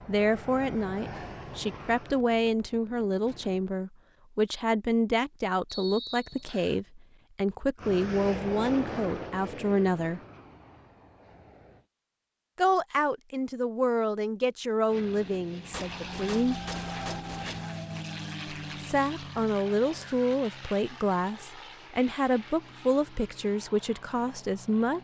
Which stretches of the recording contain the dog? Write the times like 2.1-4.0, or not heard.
not heard.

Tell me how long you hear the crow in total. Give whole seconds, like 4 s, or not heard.
not heard.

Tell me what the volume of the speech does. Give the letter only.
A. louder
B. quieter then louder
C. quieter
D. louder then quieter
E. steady
E.